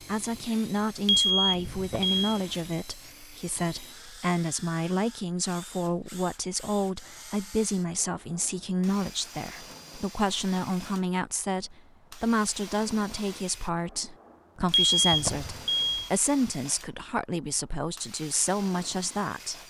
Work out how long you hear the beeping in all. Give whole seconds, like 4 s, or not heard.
3 s.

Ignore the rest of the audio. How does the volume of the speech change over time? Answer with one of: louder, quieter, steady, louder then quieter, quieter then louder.
steady.